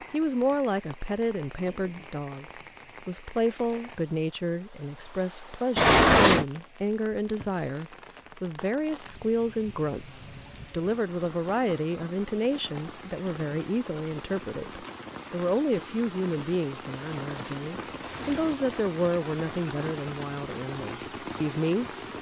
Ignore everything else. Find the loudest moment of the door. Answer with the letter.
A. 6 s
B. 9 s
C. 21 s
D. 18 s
A.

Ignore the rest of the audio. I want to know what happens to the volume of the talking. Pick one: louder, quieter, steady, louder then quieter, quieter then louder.
steady.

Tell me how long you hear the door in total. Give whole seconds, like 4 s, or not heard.
2 s.